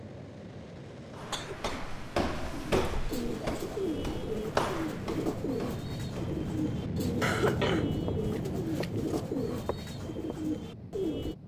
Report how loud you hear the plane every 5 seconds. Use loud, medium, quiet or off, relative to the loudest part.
medium, loud, medium.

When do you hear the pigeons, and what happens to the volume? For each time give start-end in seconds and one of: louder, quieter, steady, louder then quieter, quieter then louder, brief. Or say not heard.
2.5-11.3 steady.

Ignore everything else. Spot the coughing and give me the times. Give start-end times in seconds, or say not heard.
1.3-1.9, 7.2-9.2.